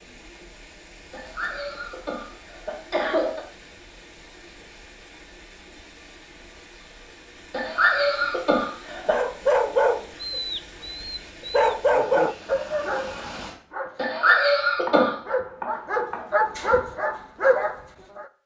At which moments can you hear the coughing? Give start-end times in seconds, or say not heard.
1.1-3.5, 7.5-9.2, 13.9-15.2.